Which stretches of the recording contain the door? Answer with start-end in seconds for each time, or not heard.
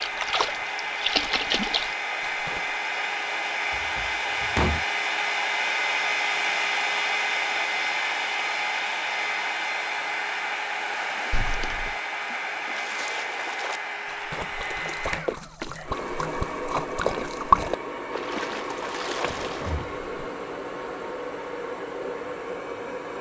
3.7-4.8, 11.3-11.9, 19.2-20.1.